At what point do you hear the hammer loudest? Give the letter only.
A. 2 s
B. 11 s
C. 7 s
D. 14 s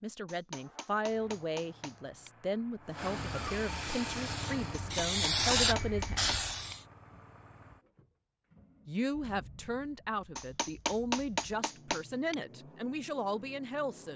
B.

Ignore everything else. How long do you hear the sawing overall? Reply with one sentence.
You can't hear the sawing here.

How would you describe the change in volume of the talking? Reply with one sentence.
The loudness of the talking stays about the same.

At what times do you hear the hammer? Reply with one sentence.
You can hear the hammer from 0.2 to 2.3 s, from 4.8 to 6.8 s and from 10.3 to 12.3 s.